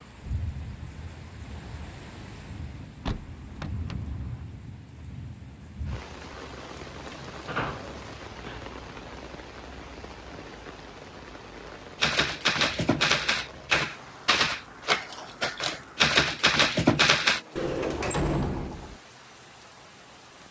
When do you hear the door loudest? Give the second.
18 s.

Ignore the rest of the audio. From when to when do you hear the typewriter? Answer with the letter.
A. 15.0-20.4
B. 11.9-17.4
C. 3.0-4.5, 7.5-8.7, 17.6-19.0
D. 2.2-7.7
B.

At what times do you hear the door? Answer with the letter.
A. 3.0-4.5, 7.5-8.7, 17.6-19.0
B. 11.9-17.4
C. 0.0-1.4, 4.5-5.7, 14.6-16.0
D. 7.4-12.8
A.